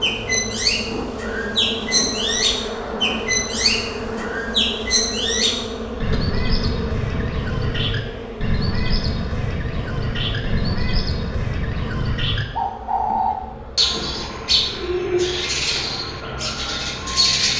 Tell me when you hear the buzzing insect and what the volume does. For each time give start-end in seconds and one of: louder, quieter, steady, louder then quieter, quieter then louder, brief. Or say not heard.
0.0-17.4 quieter.